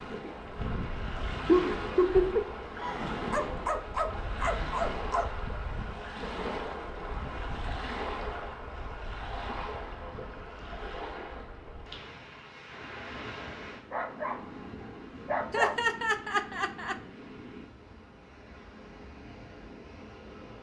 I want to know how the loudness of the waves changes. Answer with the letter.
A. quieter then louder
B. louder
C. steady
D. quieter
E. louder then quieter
D.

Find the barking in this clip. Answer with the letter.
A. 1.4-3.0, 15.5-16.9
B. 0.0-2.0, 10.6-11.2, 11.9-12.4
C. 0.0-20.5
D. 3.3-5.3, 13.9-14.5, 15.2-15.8
D.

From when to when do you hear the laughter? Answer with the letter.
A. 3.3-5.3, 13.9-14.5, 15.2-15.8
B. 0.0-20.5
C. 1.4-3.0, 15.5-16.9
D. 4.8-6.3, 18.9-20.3
C.